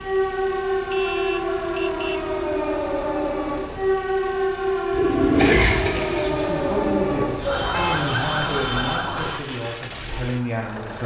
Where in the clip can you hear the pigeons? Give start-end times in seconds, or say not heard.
4.9-7.9.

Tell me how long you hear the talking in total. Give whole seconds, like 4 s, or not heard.
5 s.